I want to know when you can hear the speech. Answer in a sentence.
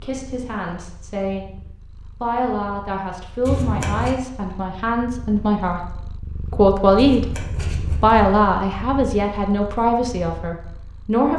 You can hear the speech from 0.0 to 1.5 s, from 2.2 to 7.2 s and from 8.0 to 11.3 s.